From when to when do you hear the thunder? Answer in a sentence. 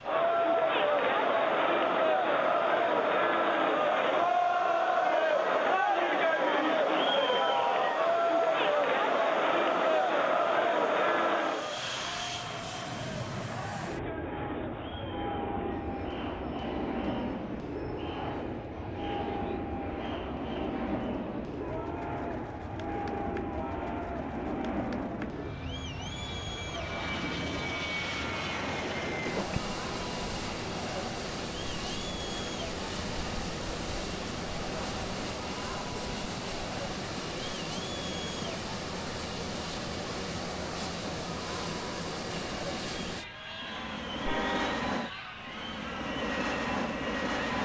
The thunder can't be heard in this clip.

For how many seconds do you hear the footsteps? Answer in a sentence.
The footsteps can't be heard in this clip.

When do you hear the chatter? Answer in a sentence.
The chatter can be heard from 0.0 to 47.5 s.